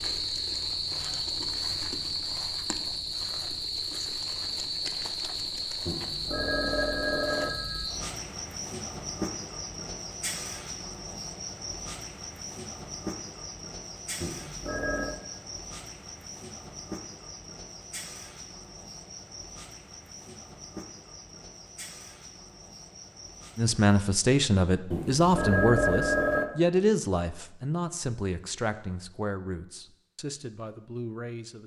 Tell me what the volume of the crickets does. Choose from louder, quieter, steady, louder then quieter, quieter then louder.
quieter.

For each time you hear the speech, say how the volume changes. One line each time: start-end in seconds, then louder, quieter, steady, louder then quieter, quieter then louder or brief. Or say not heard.
23.6-31.6 quieter.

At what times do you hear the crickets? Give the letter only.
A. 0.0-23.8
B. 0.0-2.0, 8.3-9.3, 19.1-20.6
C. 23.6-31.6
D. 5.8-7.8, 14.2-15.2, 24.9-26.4
A.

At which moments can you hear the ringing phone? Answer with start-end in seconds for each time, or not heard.
5.8-7.8, 14.2-15.2, 24.9-26.4.